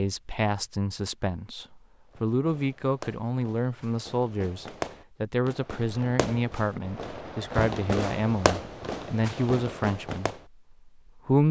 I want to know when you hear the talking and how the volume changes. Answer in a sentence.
You can hear the talking from 0.0 to 11.4 s, at a steady volume.